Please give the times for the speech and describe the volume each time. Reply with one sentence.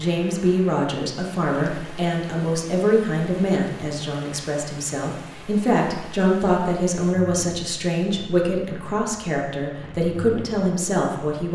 The speech can be heard from 0.0 to 11.4 s, at a steady volume.